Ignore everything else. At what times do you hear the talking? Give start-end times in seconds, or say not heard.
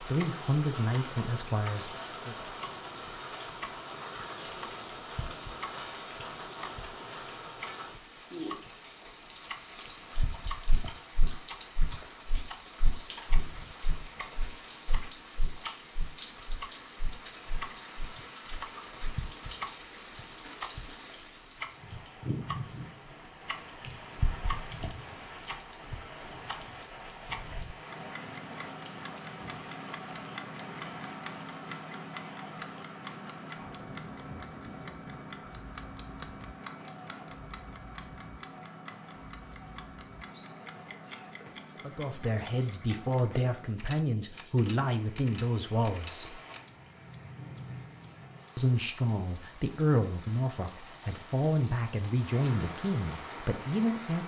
0.1-2.4, 41.8-46.4, 48.5-54.2.